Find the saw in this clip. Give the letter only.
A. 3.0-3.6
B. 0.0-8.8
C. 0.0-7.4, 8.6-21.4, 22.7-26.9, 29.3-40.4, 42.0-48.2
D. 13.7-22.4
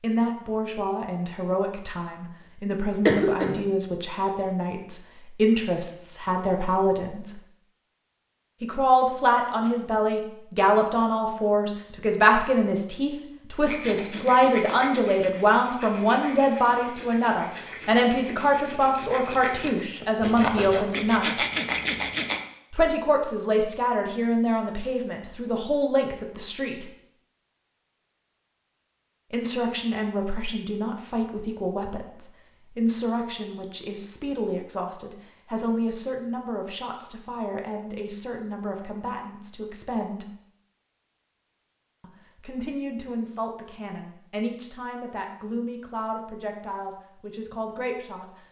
D.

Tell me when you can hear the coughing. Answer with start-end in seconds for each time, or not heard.
3.0-3.6.